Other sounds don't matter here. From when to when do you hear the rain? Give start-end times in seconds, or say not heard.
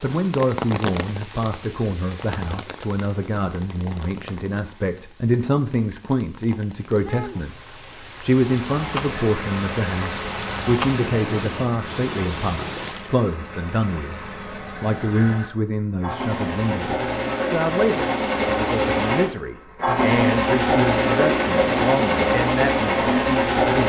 0.0-13.2.